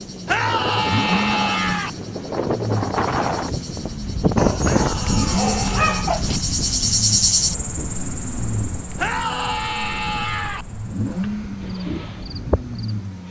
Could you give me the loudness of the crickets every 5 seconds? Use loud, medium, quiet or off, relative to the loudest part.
quiet, loud, medium.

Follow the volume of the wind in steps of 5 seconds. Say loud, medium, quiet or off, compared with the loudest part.
loud, medium, quiet.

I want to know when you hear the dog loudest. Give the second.
6 s.